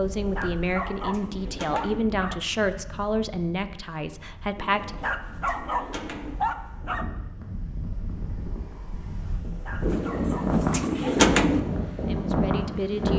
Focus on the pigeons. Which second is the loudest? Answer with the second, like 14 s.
11 s.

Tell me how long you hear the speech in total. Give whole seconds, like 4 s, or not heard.
6 s.